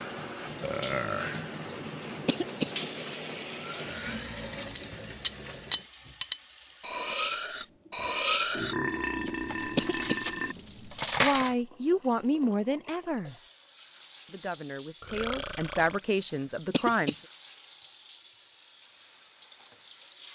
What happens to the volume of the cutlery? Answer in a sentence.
The loudness of the cutlery goes up.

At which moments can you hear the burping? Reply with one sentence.
You can hear the burping from 0.6 to 1.4 s, from 8.6 to 10.6 s and from 15.0 to 16.0 s.